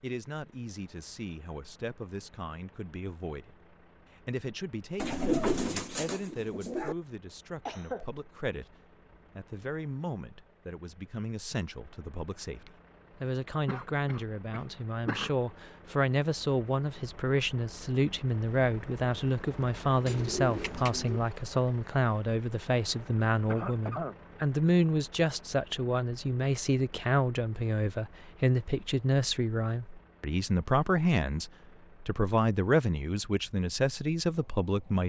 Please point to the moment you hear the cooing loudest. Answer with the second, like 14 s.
5 s.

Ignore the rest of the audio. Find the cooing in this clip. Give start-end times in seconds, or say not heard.
5.0-7.0, 20.1-21.2.